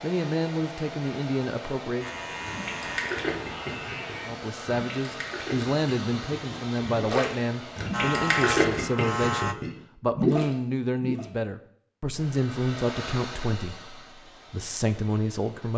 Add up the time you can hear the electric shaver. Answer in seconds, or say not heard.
4 s.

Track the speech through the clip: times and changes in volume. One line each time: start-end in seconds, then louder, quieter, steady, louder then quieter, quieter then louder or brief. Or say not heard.
0.0-2.1 brief
4.2-15.7 steady.